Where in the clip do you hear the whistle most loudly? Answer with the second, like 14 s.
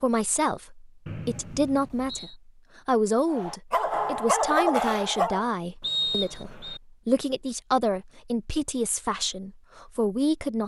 6 s.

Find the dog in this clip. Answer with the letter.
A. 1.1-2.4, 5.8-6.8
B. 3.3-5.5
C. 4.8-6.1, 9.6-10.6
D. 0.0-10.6
B.